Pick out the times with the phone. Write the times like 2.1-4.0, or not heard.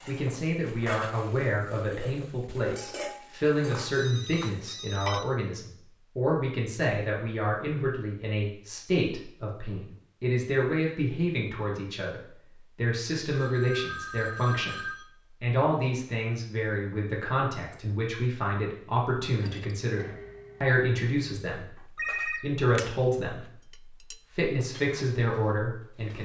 3.9-5.3, 13.3-15.1, 21.9-22.6.